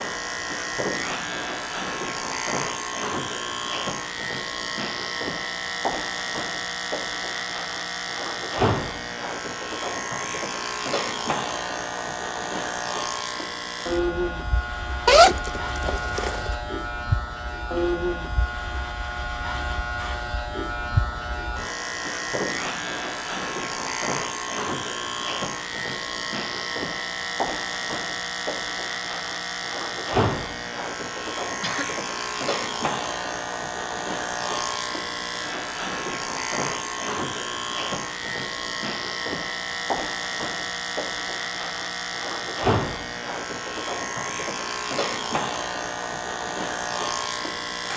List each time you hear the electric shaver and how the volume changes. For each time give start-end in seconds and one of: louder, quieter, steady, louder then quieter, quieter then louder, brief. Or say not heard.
0.0-47.9 steady.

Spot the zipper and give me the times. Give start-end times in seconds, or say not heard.
15.1-16.5.